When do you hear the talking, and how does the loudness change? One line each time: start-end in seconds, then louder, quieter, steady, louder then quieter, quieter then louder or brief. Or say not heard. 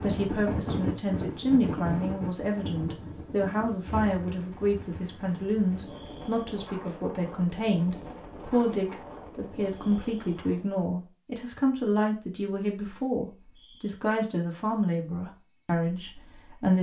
0.0-16.7 steady.